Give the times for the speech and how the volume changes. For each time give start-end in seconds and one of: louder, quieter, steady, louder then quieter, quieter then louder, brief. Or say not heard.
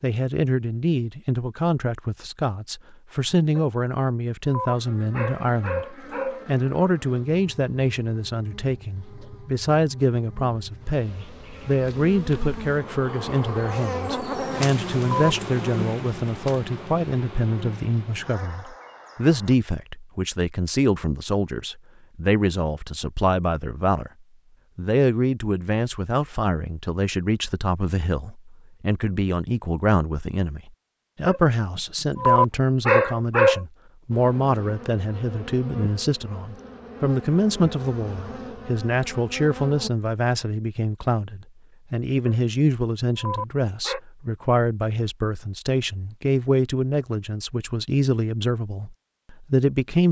0.0-24.1 steady
24.8-50.0 steady.